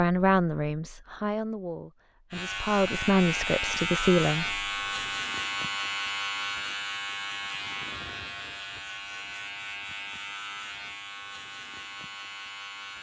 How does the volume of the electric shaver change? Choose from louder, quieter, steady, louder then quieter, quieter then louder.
quieter.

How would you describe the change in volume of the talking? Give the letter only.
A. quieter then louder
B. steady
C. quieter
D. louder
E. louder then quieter
A.